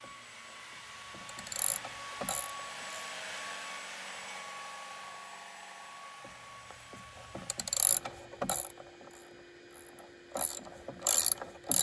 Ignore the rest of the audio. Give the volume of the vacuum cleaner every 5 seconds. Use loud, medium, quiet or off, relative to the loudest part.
loud, medium, medium.